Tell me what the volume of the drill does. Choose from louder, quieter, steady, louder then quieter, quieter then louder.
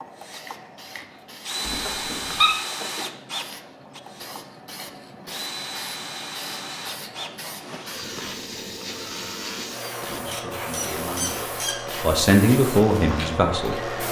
quieter.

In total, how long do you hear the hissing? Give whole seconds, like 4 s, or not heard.
14 s.